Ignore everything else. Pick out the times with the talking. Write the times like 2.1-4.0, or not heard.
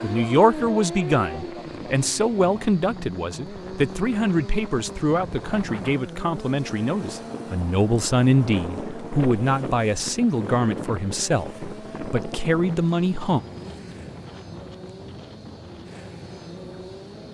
0.0-13.4.